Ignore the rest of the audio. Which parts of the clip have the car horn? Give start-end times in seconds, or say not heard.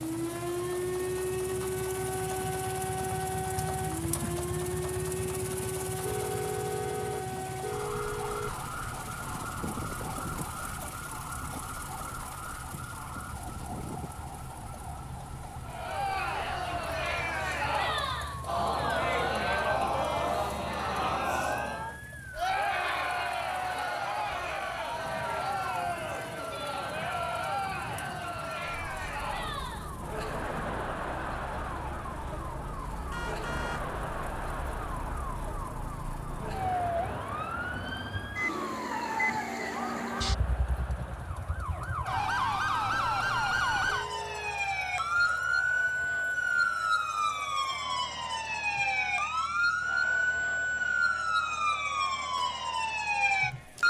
6.0-8.5, 33.1-33.9, 43.9-44.6.